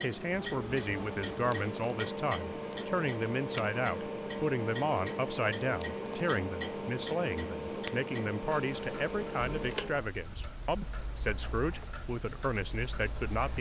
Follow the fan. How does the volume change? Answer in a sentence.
The volume of the fan goes down.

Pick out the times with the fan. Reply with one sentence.
You can hear the fan from 0.0 to 13.5 s.